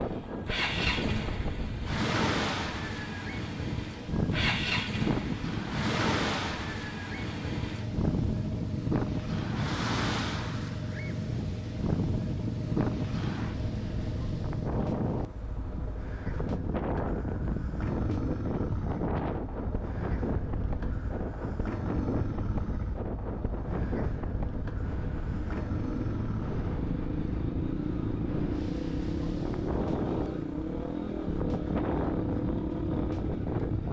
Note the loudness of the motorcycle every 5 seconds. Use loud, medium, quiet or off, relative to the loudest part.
loud, loud, loud, medium, medium, loud, loud.